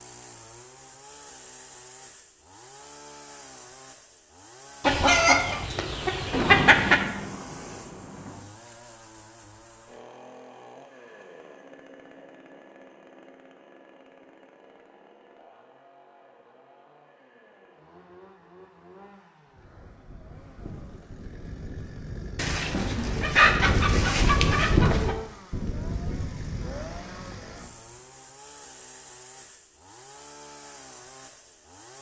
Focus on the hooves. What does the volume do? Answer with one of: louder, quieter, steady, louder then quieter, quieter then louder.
louder then quieter.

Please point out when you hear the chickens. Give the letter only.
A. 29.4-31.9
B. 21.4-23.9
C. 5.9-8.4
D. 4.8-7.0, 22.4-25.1
D.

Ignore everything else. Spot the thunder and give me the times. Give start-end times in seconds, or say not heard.
5.9-8.4.